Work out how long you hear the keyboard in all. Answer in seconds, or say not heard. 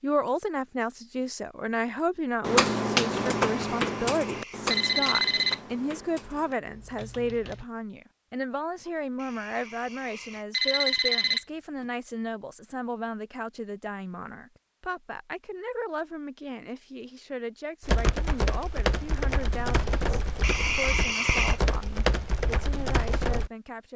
11 s.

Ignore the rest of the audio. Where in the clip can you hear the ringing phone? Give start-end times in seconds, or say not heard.
3.5-5.6, 9.2-11.8, 20.4-21.6.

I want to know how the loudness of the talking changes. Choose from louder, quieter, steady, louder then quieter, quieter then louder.
quieter.